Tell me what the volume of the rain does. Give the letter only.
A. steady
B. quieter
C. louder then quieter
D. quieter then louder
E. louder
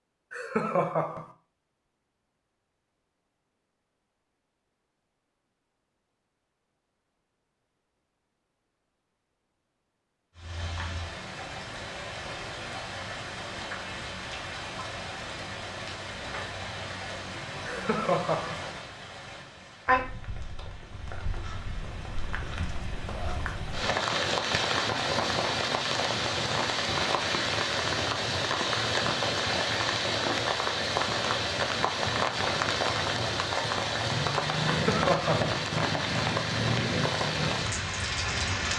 E.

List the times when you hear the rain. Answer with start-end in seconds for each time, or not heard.
10.3-38.7.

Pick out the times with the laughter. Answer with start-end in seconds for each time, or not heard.
0.3-1.3, 17.6-18.6, 34.6-35.6.